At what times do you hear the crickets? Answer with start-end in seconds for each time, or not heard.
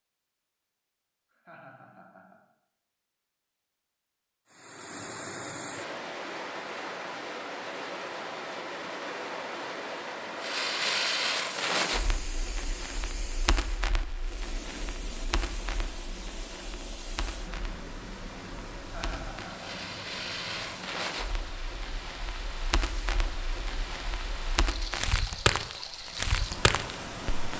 not heard.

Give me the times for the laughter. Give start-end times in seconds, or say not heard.
1.3-2.4, 18.8-19.9.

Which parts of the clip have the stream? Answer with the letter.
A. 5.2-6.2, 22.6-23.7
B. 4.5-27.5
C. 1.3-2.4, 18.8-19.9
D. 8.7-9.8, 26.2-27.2
B.